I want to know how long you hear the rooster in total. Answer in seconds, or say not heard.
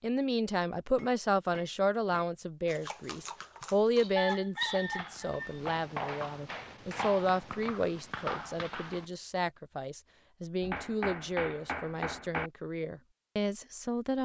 2 s.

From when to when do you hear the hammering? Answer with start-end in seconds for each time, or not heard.
0.9-2.3, 5.9-7.6, 10.6-12.5.